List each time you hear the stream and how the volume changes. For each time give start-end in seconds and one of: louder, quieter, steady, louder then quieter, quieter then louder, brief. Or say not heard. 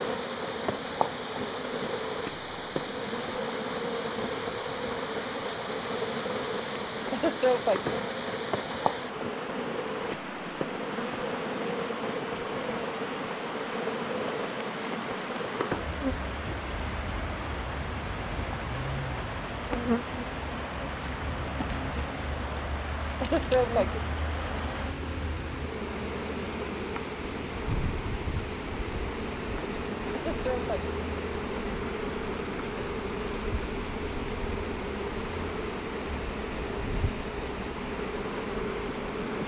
0.0-39.4 steady.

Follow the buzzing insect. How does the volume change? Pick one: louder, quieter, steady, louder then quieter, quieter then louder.
steady.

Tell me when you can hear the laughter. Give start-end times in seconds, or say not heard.
7.0-8.0, 23.1-24.0, 30.1-30.7.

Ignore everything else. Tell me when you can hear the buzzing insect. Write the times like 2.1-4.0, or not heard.
0.0-39.4.